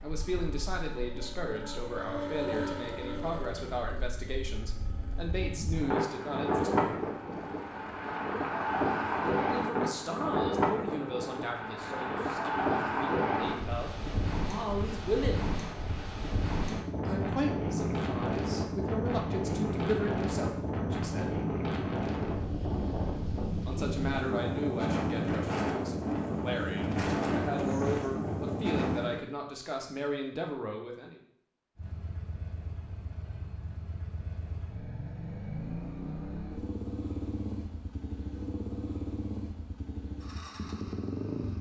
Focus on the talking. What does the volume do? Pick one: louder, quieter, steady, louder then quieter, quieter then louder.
steady.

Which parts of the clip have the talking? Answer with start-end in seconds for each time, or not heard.
0.0-7.0, 9.3-15.5, 17.1-21.4, 23.6-31.2.